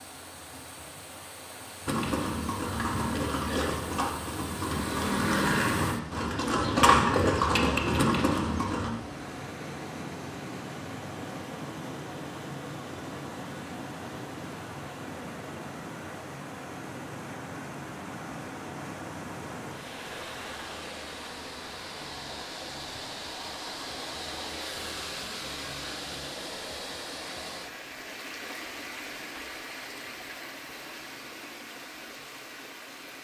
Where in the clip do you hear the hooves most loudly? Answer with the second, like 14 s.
7 s.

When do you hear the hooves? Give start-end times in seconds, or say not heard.
1.9-8.9.